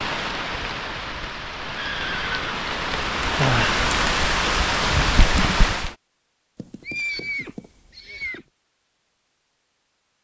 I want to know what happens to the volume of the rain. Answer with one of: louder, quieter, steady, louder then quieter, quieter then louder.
louder.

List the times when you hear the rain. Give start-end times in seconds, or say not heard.
0.0-6.0.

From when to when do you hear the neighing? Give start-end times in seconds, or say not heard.
1.8-2.5, 6.5-8.4.